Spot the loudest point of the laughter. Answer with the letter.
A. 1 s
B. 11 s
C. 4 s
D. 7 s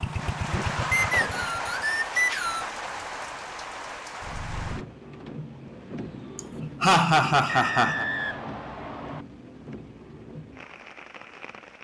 D.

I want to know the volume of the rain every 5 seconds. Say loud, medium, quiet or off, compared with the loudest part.
loud, medium, medium.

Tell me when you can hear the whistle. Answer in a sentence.
You can hear the whistle from 0.9 to 2.7 s and from 7.5 to 9.2 s.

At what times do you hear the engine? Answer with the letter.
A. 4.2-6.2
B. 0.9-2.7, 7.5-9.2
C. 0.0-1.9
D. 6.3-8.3
C.